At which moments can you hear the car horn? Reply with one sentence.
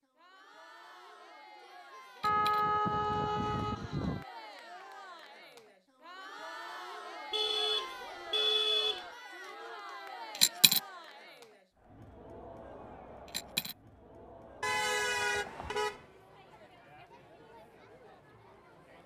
You can hear the car horn from 2.2 to 4.2 s, from 7.3 to 9.1 s and from 14.6 to 16.0 s.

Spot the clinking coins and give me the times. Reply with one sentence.
The clinking coins can be heard from 2.1 to 2.6 s, from 10.3 to 10.8 s and from 13.2 to 13.8 s.